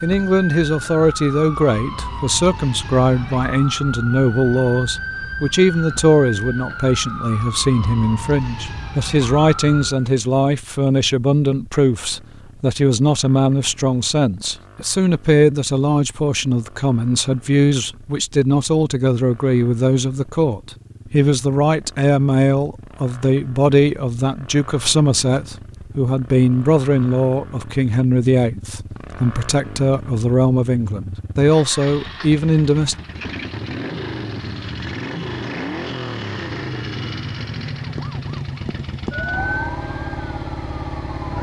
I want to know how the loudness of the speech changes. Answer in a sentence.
The loudness of the speech stays about the same.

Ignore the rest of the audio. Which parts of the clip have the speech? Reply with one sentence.
The speech can be heard from 0.0 to 33.0 s.